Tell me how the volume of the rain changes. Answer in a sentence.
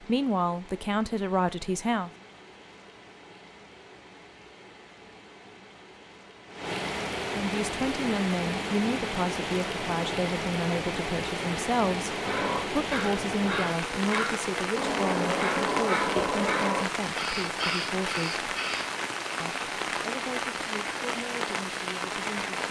The volume of the rain goes up.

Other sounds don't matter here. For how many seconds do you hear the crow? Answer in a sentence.
The crow can be heard for 7 seconds in total.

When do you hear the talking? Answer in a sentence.
The talking can be heard from 0.0 to 2.1 s, from 7.3 to 18.5 s and from 19.4 to 22.6 s.